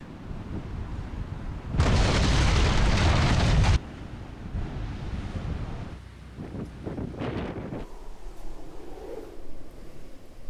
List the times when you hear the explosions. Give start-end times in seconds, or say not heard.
1.8-3.8.